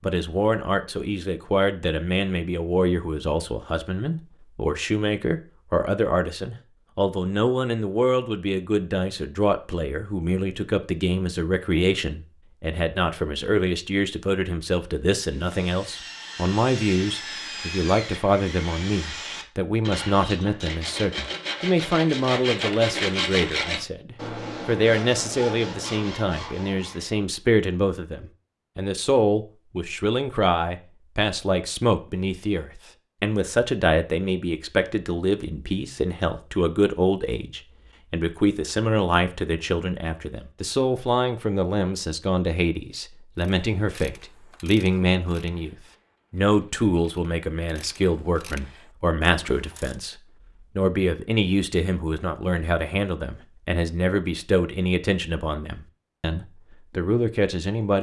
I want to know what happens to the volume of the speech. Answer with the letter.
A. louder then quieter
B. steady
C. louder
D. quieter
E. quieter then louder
B.